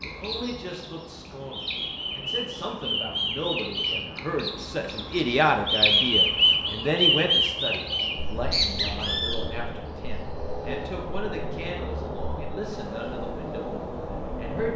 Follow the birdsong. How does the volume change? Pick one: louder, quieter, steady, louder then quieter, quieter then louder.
louder then quieter.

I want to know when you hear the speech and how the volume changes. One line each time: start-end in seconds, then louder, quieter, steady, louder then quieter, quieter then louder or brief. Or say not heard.
0.0-14.7 louder then quieter.